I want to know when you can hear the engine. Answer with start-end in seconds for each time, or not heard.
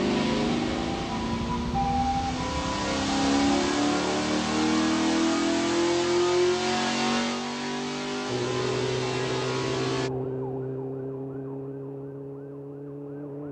0.0-10.1.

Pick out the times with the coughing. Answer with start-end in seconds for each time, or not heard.
not heard.